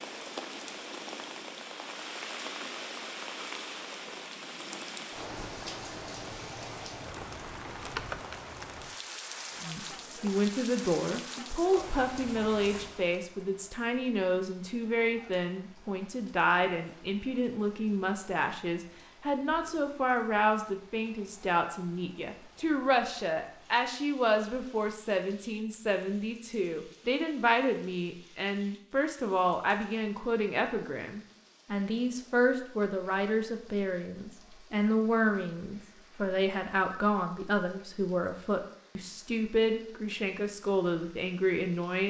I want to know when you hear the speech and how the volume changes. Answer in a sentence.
You can hear the speech from 9.6 to 42.0 s, at a steady volume.